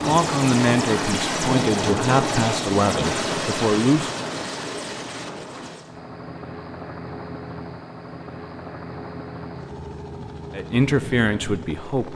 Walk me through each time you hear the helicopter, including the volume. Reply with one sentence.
You can hear the helicopter from 0.0 to 12.1 s, getting quieter.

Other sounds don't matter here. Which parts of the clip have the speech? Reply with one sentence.
The speech can be heard from 0.1 to 4.1 s and from 10.5 to 12.1 s.